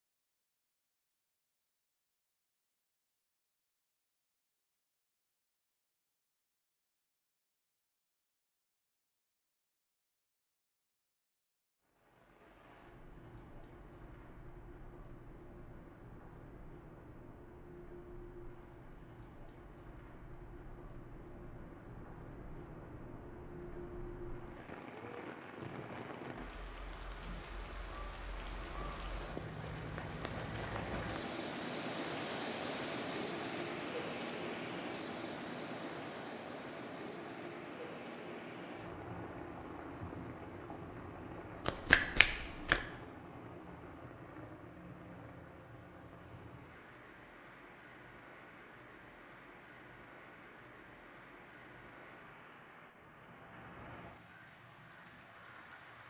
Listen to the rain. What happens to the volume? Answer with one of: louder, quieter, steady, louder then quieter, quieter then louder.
louder then quieter.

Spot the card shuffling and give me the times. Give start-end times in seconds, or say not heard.
41.6-42.8.